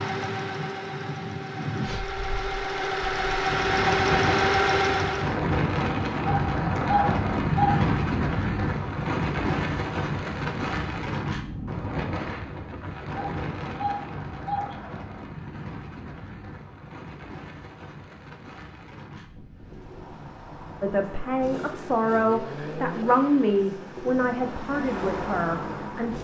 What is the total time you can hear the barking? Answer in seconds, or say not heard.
3 s.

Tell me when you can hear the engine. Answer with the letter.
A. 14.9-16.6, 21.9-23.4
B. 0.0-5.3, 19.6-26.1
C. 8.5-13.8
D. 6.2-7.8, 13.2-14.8
B.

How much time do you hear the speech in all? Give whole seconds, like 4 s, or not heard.
5 s.